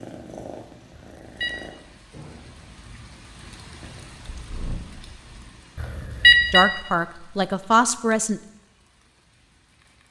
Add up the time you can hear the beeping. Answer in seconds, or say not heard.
2 s.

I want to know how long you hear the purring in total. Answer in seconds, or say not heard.
3 s.